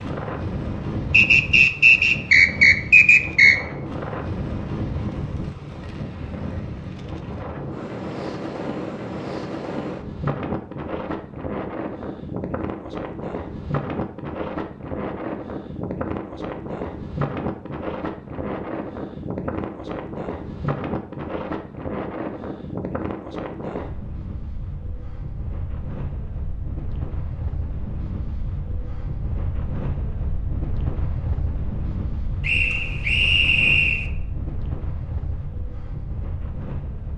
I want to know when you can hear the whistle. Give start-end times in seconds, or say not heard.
1.1-3.5, 32.4-34.1.